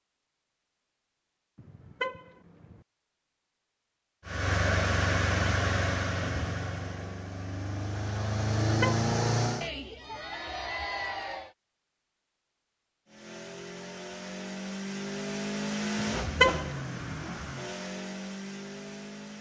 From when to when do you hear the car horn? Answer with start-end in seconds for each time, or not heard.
1.6-2.8, 8.7-9.1, 15.9-17.2.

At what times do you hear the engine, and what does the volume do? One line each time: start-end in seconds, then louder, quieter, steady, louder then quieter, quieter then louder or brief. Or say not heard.
4.2-9.7 quieter then louder
13.1-19.3 louder then quieter.